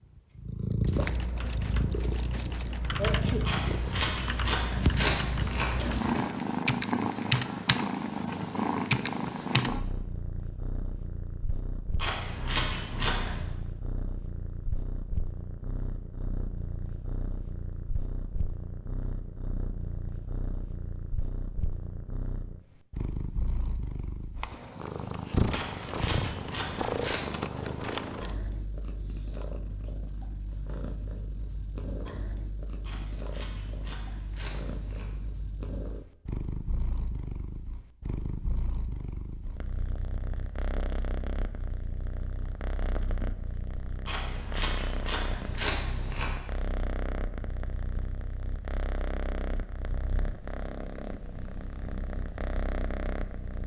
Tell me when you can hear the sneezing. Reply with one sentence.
You can hear the sneezing from 3.0 to 3.5 s.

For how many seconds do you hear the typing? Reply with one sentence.
You can hear the typing for 9 seconds altogether.